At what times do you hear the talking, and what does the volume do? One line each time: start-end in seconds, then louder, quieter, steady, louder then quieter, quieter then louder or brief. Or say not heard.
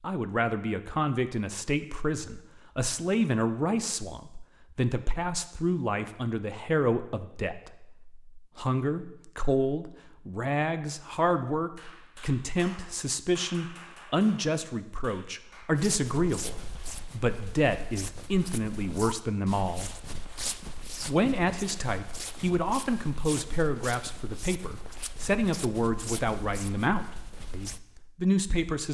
0.0-19.9 steady
21.1-28.8 steady.